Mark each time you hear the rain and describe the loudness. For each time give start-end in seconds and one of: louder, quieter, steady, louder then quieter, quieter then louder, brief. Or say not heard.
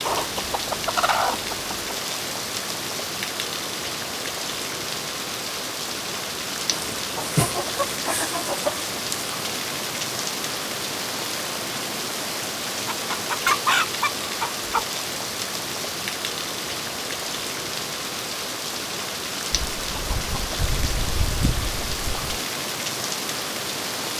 0.0-24.1 steady.